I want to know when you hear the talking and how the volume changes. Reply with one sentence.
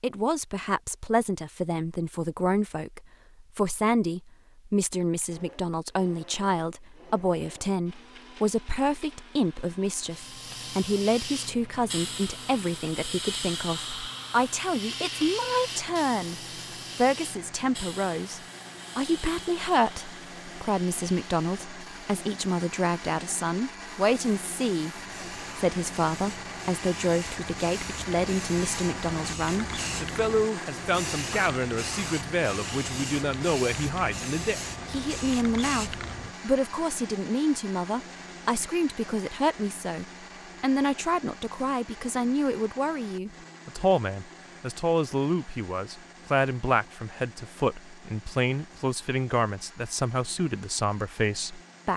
You can hear the talking from 0.0 to 51.9 s, at a steady volume.